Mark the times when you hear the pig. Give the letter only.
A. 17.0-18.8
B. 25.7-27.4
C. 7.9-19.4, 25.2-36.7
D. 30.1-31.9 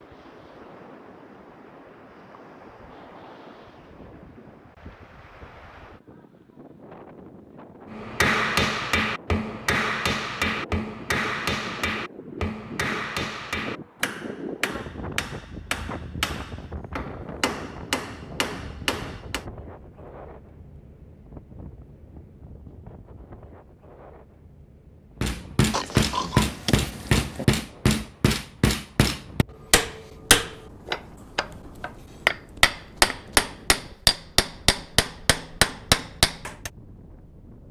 B.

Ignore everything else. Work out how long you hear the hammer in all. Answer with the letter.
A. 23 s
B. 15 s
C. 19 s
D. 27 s
A.